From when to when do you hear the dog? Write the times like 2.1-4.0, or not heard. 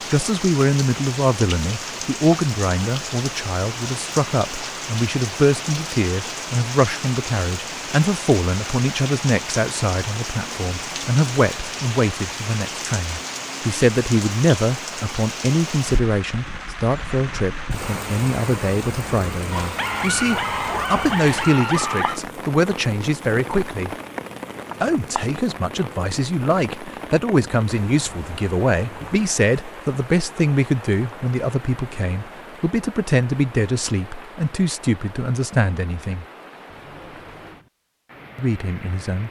19.5-22.2.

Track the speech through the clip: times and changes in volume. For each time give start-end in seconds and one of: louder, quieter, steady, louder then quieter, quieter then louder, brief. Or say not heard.
0.1-23.9 steady
24.8-36.2 steady
38.4-39.2 brief.